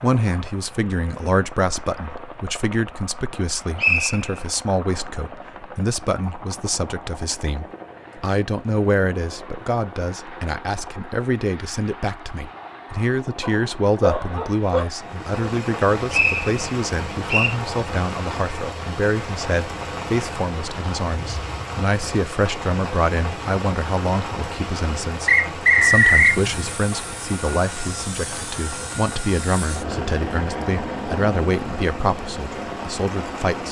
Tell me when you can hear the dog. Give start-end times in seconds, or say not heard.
13.4-14.8.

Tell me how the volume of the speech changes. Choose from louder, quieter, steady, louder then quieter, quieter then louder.
steady.